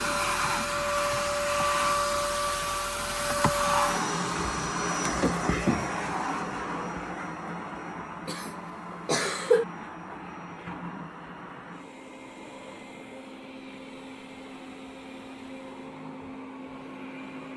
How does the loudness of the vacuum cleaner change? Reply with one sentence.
The loudness of the vacuum cleaner goes down.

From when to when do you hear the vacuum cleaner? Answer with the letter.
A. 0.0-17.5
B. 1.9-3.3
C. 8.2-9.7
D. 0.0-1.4
A.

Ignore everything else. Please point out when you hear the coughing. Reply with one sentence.
The coughing can be heard from 8.2 to 9.7 s.